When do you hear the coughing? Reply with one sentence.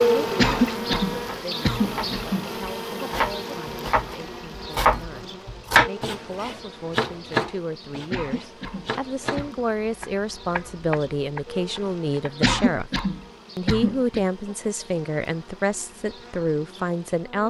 You can hear the coughing from 0.3 to 2.5 s, from 8.1 to 9.6 s and from 12.4 to 14.2 s.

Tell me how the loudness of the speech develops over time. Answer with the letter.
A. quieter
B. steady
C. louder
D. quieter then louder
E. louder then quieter
C.